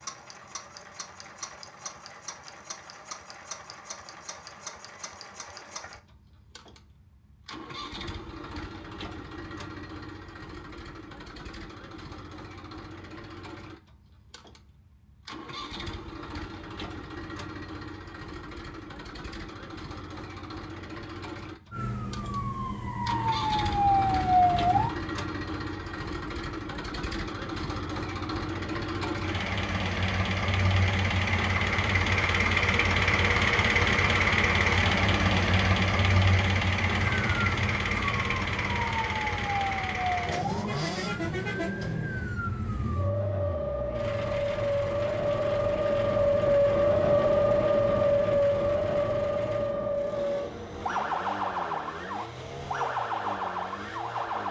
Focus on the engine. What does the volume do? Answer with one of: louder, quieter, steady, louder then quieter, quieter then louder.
louder then quieter.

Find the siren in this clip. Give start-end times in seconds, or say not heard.
21.7-24.9, 36.9-54.4.